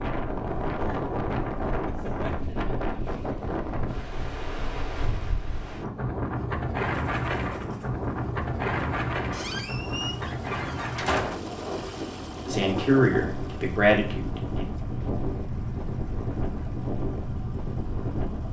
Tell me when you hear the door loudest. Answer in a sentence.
The loudest moment of the door is at 11 seconds.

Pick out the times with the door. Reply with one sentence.
The door can be heard from 9.3 to 11.4 s.